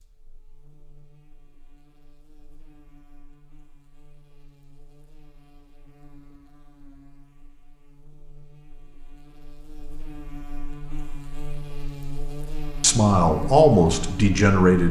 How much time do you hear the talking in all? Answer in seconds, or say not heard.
2 s.